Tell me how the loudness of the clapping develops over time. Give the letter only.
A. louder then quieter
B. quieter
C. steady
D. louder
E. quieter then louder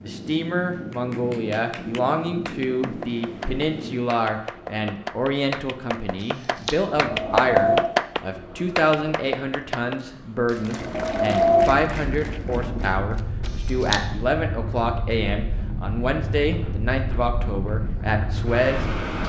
A.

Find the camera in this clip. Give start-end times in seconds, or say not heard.
6.2-6.8, 13.2-14.0.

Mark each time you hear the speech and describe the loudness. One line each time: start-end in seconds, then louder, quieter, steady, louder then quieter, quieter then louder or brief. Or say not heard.
0.0-19.2 steady.